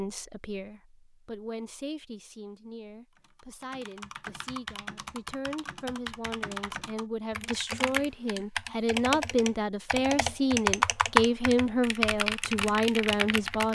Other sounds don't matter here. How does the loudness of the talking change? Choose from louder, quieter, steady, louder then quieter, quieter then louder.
louder.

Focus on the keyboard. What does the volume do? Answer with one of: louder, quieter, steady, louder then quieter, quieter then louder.
louder then quieter.